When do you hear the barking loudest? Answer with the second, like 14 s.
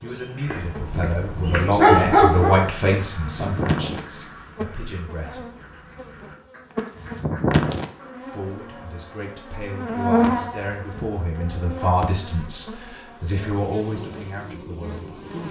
2 s.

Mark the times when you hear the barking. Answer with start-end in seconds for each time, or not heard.
0.5-2.5.